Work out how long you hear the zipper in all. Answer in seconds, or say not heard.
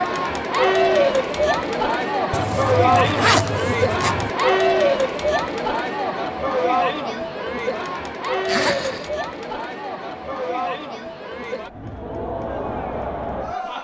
3 s.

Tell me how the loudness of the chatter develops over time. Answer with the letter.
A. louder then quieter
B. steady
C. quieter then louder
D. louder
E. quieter
E.